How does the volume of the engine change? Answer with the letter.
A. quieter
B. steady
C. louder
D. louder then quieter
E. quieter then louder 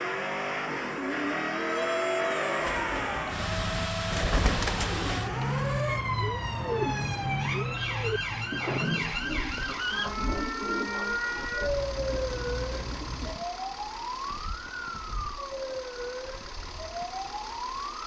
A.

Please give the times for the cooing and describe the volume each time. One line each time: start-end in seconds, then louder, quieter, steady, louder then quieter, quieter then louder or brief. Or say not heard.
2.6-13.3 quieter.